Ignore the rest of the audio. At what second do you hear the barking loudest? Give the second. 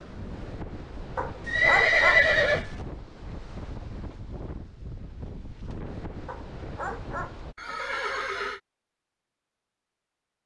2 s.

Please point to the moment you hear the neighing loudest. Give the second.
2 s.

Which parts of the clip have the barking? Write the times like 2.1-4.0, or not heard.
1.1-2.2, 6.2-7.3.